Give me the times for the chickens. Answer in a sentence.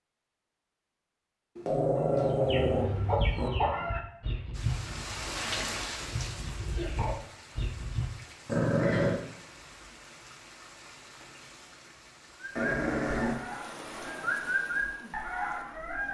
The chickens can be heard from 1.9 to 8.2 s and from 12.4 to 16.0 s.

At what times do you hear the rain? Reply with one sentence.
You can hear the rain from 4.5 to 16.0 s.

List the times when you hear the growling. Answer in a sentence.
You can hear the growling from 1.6 to 3.5 s, from 8.4 to 9.2 s and from 12.6 to 13.4 s.